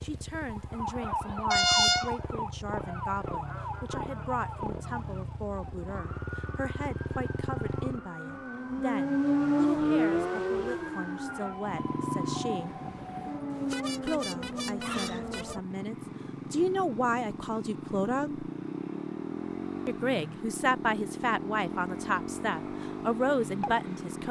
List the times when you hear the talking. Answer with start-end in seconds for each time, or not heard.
0.0-12.8, 14.0-18.4, 19.9-24.2.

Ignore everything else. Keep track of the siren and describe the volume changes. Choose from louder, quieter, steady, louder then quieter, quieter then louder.
quieter then louder.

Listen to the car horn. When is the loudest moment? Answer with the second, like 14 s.
2 s.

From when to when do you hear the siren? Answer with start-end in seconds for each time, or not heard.
0.0-15.7.